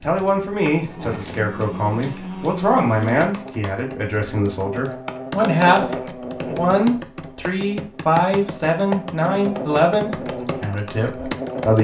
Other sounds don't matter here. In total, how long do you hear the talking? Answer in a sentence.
You can hear the talking for 12 seconds altogether.